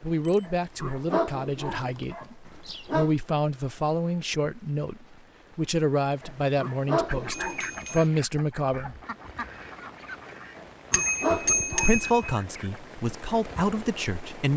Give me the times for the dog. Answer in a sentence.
The dog can be heard from 0.5 to 3.1 s, from 6.2 to 8.0 s and from 10.6 to 12.3 s.